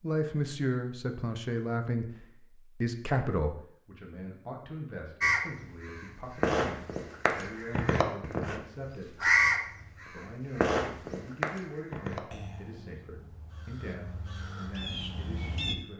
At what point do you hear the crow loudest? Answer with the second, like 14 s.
9 s.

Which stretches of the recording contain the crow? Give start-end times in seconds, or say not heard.
5.2-15.8.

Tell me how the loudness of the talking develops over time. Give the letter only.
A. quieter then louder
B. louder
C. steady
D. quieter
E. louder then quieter
D.